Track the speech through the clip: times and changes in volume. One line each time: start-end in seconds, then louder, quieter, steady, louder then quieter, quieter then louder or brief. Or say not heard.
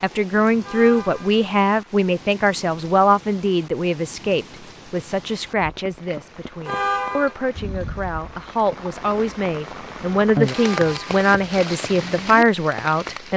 0.0-13.3 quieter then louder.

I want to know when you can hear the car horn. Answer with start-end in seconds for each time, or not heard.
0.6-1.4, 6.7-7.3, 10.5-11.2.